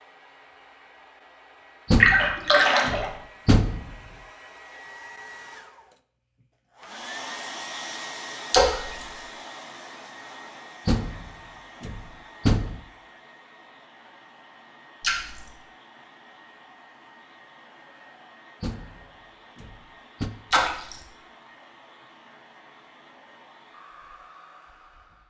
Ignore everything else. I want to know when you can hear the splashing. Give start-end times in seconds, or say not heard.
2.0-3.1, 8.5-9.1, 15.0-15.5, 20.5-21.0.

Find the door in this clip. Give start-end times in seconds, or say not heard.
1.9-4.0, 10.8-12.8, 18.6-20.3.